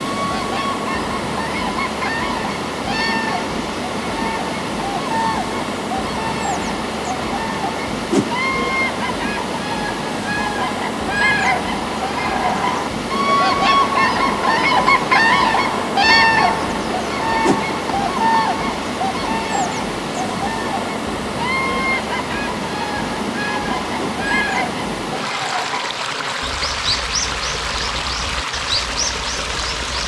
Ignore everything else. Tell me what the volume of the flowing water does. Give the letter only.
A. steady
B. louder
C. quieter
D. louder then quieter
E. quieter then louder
A.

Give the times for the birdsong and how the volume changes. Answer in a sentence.
The birdsong can be heard from 0.0 to 30.0 s, getting louder then quieter.